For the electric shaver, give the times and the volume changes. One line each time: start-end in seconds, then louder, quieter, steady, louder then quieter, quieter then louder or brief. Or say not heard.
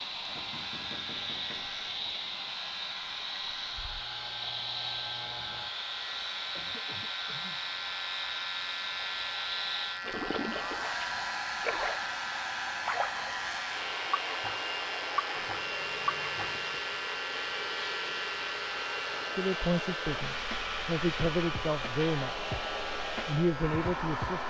0.0-24.4 louder.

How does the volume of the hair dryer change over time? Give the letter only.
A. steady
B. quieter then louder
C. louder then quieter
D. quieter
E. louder
A.